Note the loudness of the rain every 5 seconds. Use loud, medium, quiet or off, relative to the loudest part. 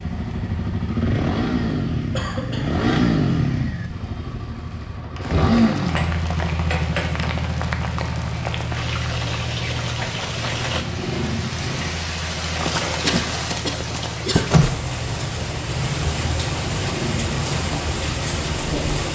quiet, medium, loud, loud.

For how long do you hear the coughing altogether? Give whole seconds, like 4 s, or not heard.
2 s.